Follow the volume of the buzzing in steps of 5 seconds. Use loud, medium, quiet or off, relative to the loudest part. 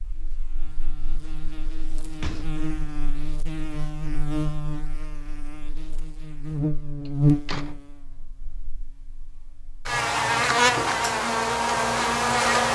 quiet, medium, loud.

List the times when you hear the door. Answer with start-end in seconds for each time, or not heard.
2.1-2.6, 7.0-7.8.